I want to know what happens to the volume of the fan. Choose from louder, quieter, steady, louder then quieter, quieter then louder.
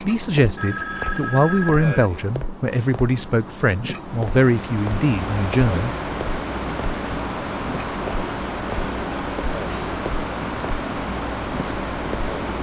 steady.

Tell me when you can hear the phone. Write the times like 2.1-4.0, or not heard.
0.6-2.1.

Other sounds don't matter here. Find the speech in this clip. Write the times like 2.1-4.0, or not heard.
0.0-6.0.